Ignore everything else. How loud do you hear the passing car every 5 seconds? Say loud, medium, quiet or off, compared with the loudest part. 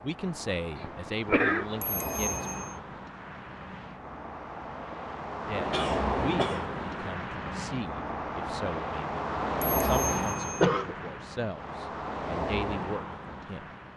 medium, loud, loud.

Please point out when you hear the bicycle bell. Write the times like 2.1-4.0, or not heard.
1.8-2.6, 9.6-10.6.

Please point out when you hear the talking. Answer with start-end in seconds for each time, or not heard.
0.0-2.5, 5.3-13.7.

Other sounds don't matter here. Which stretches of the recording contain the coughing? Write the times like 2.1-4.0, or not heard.
0.8-1.7, 5.5-7.2, 10.1-10.9.